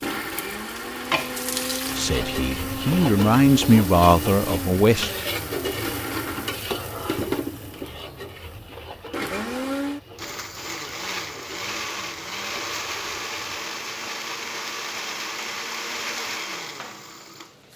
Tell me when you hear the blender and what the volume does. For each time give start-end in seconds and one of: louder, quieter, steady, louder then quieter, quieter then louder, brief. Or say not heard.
0.0-17.7 steady.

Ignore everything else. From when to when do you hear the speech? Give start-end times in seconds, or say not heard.
1.9-5.1.